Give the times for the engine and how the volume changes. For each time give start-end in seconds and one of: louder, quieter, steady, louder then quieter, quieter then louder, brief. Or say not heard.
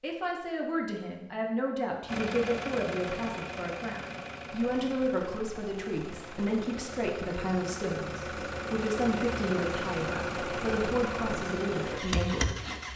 2.0-12.9 quieter then louder.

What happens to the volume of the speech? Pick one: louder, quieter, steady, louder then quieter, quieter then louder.
steady.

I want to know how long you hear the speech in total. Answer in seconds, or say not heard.
13 s.